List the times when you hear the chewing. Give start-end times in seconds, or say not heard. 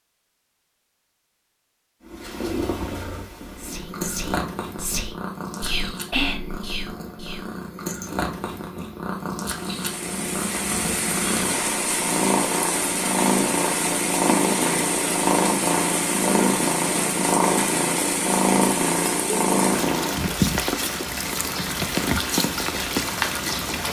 not heard.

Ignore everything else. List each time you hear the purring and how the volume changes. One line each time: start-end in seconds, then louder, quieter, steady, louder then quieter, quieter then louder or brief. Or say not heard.
2.0-20.4 louder.